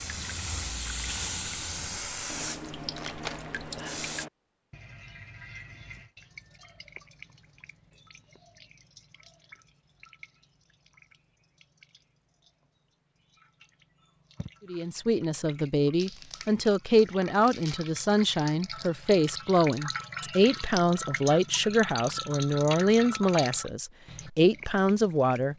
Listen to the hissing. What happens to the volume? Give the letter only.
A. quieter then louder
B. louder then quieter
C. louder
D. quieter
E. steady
D.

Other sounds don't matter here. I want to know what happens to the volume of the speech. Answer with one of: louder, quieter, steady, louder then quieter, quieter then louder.
steady.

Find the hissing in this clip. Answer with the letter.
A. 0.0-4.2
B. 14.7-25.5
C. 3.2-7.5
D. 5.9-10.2
A.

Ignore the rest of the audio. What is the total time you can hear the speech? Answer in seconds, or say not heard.
11 s.